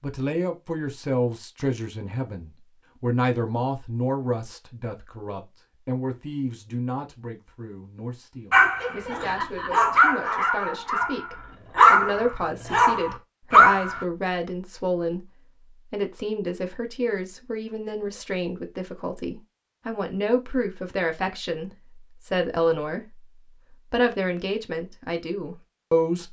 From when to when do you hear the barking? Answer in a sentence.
You can hear the barking from 8.5 to 14.1 s.